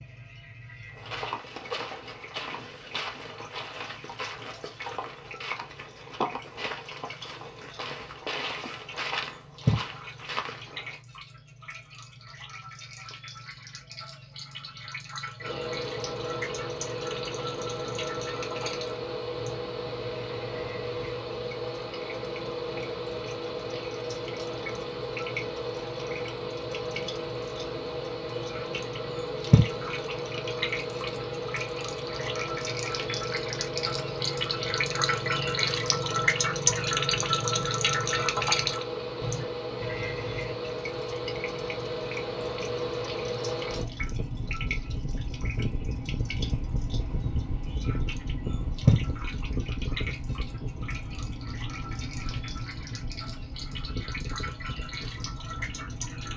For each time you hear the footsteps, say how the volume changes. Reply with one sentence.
You can hear the footsteps from 0.9 to 11.0 s, at a steady volume.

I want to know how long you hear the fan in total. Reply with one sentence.
You can hear the fan for 41 seconds altogether.